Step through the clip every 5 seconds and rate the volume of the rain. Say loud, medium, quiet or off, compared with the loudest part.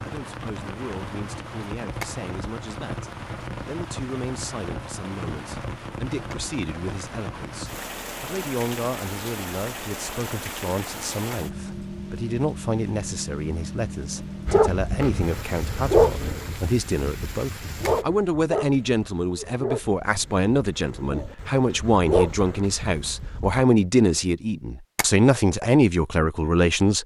loud, loud, loud, loud, off, off.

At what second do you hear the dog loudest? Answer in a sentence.
The volume of the dog peaks at 16 seconds.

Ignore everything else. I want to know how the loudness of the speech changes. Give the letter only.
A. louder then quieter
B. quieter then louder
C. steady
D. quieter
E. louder
E.